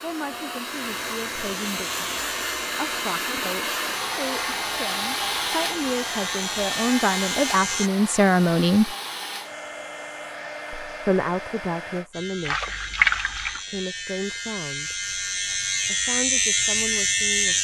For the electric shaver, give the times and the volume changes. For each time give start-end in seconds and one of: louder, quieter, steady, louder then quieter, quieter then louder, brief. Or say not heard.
0.2-7.9 louder
12.1-17.5 louder.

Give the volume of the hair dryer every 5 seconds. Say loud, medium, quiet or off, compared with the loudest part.
loud, loud, medium, off.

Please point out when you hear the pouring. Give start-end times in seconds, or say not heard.
12.4-13.6.